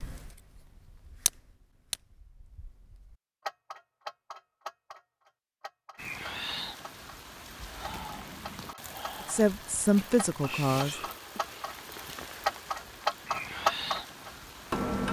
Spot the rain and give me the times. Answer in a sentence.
The rain can be heard from 6.0 to 15.0 s.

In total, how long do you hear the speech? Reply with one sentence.
You can hear the speech for 2 seconds altogether.